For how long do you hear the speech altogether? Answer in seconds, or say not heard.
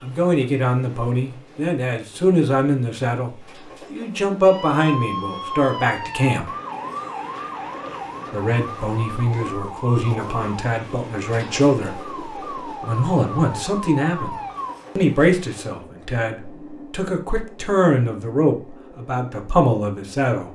18 s.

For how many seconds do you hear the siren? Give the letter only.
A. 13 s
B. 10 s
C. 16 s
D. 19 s
B.